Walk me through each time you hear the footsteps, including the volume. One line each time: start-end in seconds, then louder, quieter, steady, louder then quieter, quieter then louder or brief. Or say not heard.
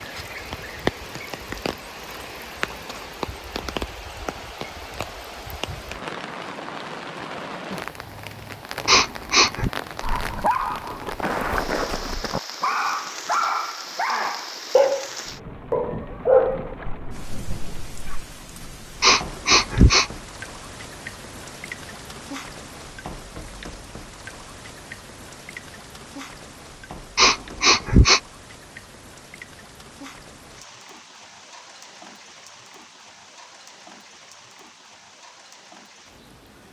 not heard.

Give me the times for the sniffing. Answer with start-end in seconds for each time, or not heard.
8.8-9.7, 19.0-20.1, 27.1-28.2.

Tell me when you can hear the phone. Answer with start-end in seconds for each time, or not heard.
not heard.